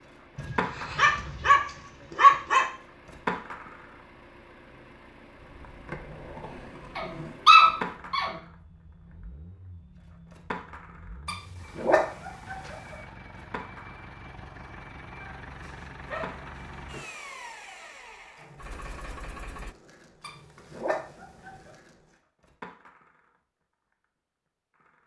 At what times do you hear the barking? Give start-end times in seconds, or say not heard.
0.3-2.6, 7.0-8.3, 11.2-12.8, 15.2-17.1, 20.2-21.7.